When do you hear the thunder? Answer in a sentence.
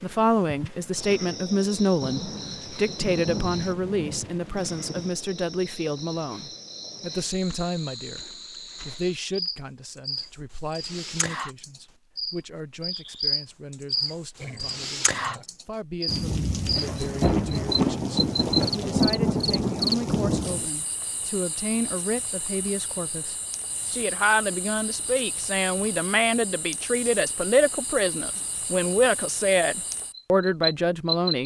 You can hear the thunder from 2.0 to 5.1 s and from 16.1 to 20.7 s.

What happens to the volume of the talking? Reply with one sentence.
The loudness of the talking goes down, then up.